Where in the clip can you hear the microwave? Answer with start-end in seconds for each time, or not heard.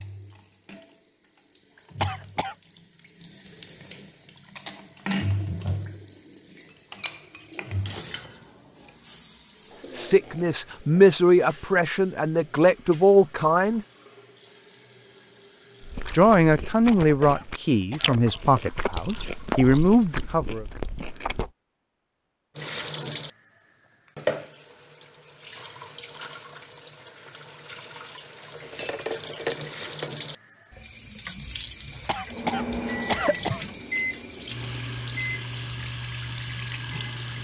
32.2-37.3.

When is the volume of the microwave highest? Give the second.
33 s.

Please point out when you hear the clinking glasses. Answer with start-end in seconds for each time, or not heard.
6.7-8.9, 28.5-30.1.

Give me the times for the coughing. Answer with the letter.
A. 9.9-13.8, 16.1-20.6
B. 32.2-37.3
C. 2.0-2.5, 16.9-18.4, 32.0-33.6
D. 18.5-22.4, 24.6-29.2
C.